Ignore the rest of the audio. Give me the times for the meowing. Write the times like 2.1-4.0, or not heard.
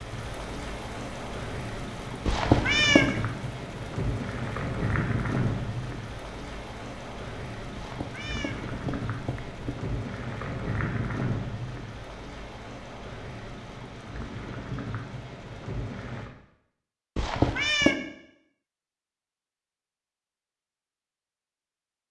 2.2-3.2, 7.7-9.8, 17.1-17.9.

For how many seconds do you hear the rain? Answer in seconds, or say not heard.
16 s.